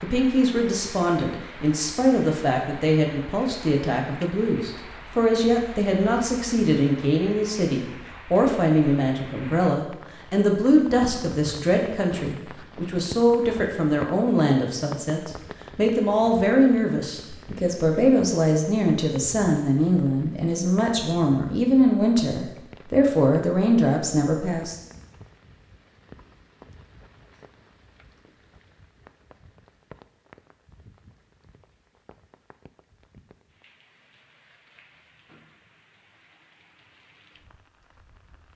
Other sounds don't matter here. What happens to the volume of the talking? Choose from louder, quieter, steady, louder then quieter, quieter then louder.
steady.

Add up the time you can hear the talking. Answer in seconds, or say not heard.
25 s.